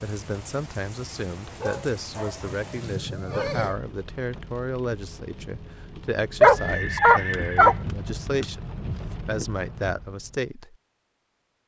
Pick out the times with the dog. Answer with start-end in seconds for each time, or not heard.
1.4-3.6, 6.4-7.8.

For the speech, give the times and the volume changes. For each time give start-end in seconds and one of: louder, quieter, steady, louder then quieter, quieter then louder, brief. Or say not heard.
0.0-10.8 steady.